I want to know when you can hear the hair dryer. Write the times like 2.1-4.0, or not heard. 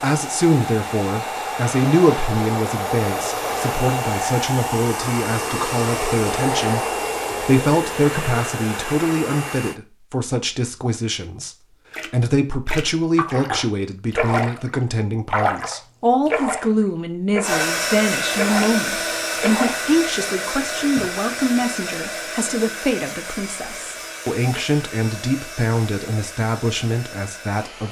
0.0-9.8, 17.4-27.8.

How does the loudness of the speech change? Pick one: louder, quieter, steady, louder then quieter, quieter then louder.
steady.